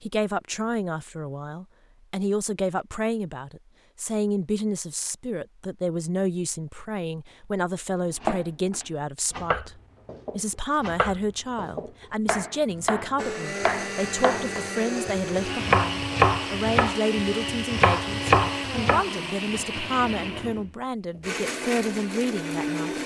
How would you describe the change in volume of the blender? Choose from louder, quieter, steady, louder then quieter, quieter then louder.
steady.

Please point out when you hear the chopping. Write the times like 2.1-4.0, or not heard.
8.1-19.1.